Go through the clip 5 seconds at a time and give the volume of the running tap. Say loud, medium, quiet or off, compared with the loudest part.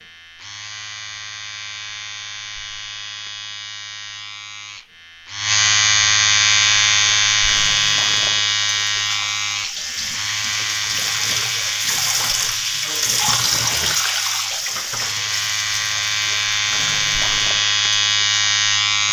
off, medium, loud, medium.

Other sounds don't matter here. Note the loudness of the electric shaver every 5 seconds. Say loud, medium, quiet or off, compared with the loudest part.
quiet, loud, medium, loud.